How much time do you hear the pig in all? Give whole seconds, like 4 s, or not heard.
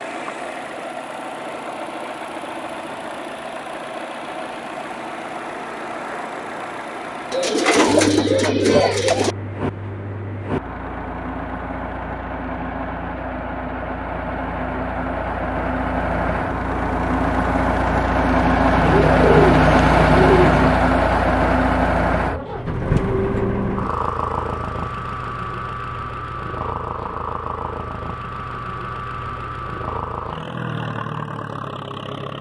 not heard.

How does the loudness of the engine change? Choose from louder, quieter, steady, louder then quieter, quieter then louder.
louder then quieter.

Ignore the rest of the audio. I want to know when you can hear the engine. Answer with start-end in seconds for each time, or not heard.
0.0-32.3.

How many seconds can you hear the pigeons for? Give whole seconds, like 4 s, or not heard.
4 s.